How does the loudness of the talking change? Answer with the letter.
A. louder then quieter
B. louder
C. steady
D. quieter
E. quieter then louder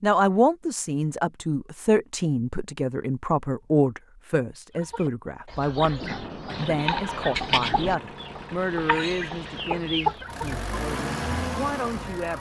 D.